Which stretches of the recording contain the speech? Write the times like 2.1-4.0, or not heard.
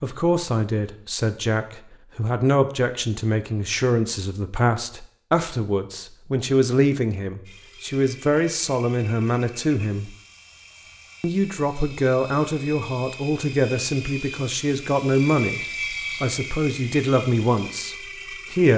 0.0-10.2, 11.2-15.6, 16.2-18.7.